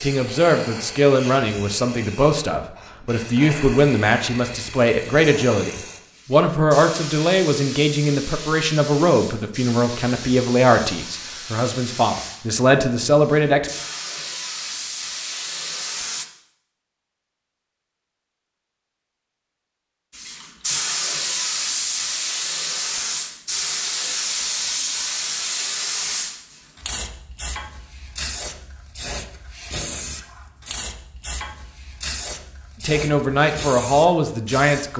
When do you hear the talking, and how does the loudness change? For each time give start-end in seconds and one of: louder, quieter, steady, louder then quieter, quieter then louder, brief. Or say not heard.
0.0-13.7 steady
32.8-34.9 brief.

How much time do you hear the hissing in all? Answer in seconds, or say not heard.
31 s.